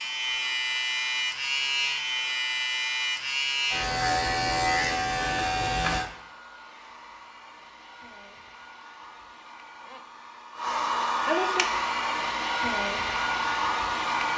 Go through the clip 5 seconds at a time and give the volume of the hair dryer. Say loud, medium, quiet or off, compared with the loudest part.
quiet, quiet, loud.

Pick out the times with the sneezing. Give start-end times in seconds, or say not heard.
not heard.